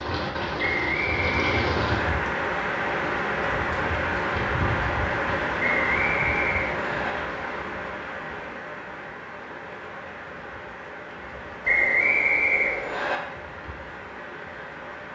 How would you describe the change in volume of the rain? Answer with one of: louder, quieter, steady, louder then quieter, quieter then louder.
quieter.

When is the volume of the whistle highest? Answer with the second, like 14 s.
12 s.